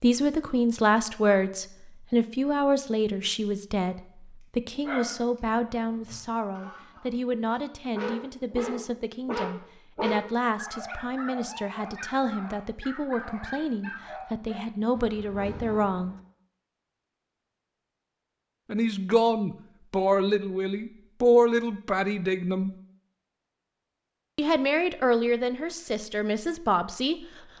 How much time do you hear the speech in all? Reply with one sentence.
You can hear the speech for 23 seconds altogether.